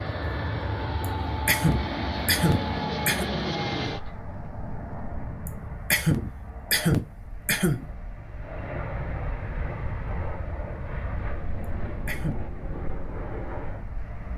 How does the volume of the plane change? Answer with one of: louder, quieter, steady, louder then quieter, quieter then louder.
quieter then louder.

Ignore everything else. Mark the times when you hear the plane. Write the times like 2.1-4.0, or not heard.
0.0-14.3.